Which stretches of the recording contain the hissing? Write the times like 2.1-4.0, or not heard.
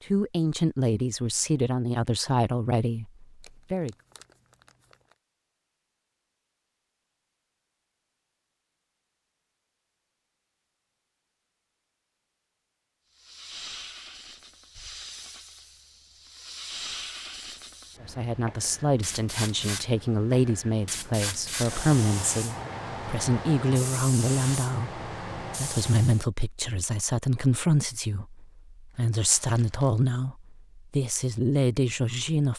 13.1-26.2.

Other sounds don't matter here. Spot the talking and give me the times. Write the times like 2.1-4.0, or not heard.
0.1-4.0, 18.0-32.5.